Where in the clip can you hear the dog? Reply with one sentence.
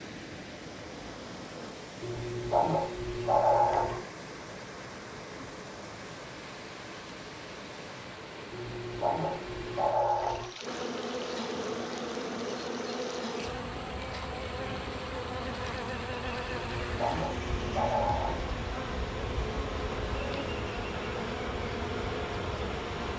The dog can be heard from 2.0 to 4.0 s, from 8.5 to 10.5 s and from 16.5 to 18.4 s.